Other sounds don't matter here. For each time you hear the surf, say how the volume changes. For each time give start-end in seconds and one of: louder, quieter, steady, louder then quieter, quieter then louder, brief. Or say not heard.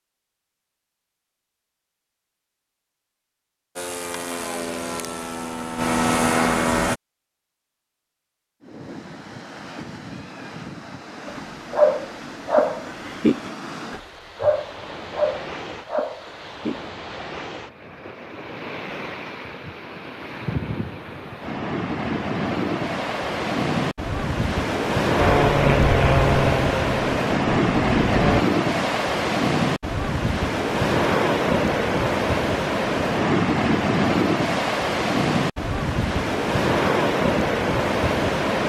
8.6-38.6 louder.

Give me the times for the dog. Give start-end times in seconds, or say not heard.
11.2-16.8.